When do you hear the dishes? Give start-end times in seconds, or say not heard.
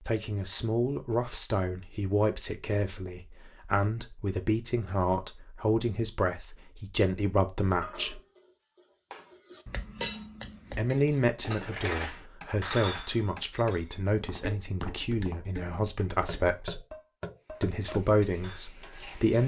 7.8-18.6.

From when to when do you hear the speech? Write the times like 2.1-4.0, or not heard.
0.1-8.2, 10.7-16.8, 17.6-19.4.